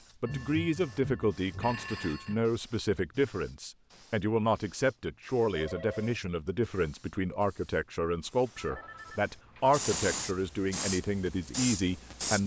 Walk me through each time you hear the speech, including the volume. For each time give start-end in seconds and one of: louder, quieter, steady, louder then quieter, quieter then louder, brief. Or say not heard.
0.2-12.4 steady.